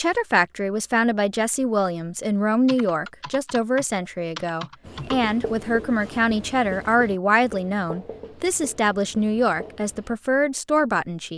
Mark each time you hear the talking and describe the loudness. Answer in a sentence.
The talking can be heard from 0.0 to 11.3 s, at a steady volume.